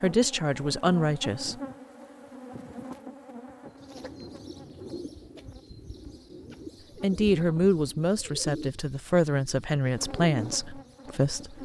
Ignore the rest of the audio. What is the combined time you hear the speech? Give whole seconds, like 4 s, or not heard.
6 s.